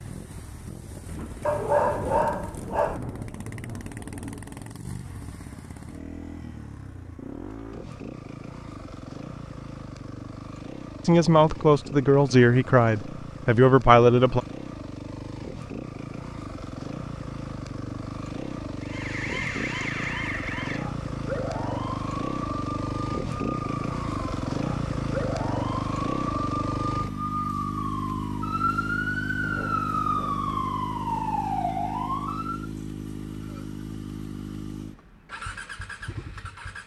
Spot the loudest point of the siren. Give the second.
30 s.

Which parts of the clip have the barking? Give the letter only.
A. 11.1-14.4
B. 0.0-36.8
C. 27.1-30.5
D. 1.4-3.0
D.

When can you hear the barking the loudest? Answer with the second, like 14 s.
2 s.